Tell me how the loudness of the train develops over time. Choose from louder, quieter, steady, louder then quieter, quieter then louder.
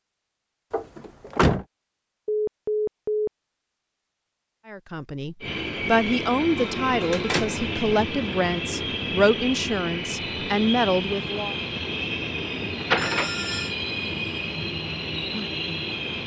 steady.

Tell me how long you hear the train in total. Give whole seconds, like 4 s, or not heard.
11 s.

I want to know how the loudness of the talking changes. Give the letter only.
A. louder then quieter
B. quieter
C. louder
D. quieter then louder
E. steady
E.